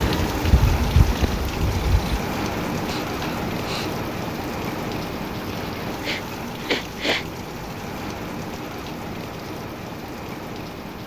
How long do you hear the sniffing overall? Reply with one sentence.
The sniffing can be heard for 2 seconds in total.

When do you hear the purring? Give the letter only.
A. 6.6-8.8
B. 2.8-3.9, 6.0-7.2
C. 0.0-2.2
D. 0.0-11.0
C.